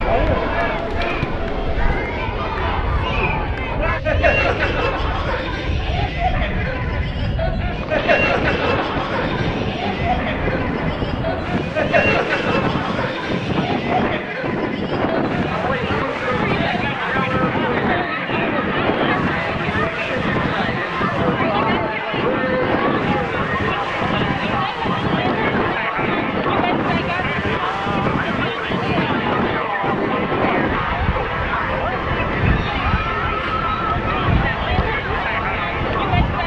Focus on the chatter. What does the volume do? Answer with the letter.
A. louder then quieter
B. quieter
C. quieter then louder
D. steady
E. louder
D.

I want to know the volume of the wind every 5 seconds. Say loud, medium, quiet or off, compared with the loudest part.
medium, loud, loud, loud, loud, loud, loud, loud.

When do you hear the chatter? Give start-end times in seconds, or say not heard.
0.0-36.4.